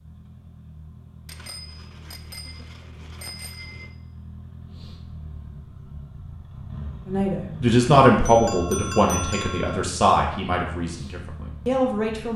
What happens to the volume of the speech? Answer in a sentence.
The volume of the speech goes down.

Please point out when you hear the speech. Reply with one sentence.
The speech can be heard from 7.0 to 12.3 s.